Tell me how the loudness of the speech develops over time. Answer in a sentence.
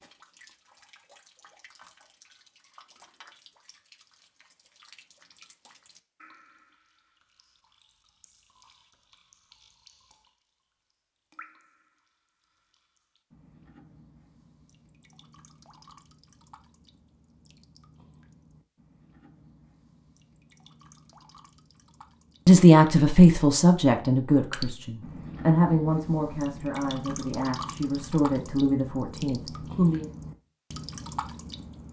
The volume of the speech goes down.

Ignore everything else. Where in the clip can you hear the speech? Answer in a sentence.
You can hear the speech from 22.4 to 30.1 s.